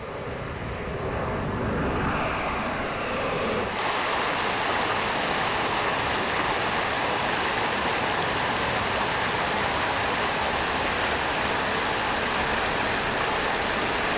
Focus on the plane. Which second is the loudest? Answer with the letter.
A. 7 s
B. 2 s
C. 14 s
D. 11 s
B.